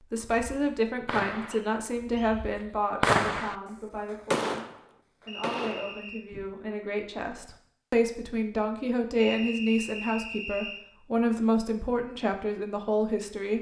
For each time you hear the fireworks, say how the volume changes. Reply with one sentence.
You can hear the fireworks from 0.3 to 4.8 s, getting quieter then louder; and briefly from 5.4 to 6.5 s.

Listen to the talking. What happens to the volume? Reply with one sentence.
The loudness of the talking goes down, then up.